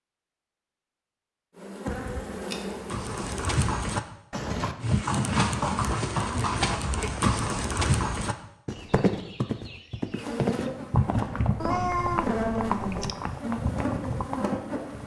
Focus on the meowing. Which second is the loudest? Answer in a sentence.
The volume of the meowing peaks at 12 seconds.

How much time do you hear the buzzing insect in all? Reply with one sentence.
The buzzing insect can be heard for 7 seconds in total.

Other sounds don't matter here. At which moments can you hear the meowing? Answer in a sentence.
You can hear the meowing from 11.6 to 13.2 s.